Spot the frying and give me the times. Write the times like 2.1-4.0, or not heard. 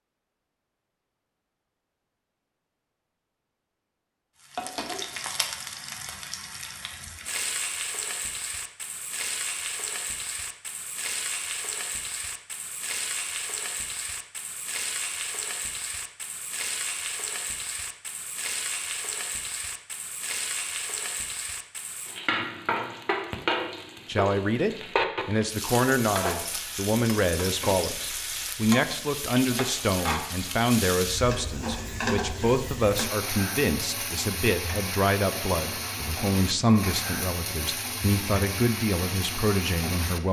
4.4-40.2.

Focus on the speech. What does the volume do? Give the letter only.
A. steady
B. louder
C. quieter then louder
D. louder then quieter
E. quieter
A.